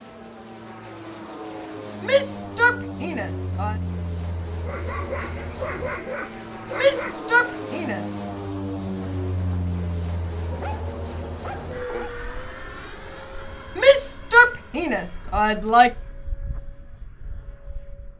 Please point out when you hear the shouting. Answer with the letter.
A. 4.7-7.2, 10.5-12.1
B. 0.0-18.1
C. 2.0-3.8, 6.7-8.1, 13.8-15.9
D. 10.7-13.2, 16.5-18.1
C.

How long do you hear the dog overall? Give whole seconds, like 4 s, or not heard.
4 s.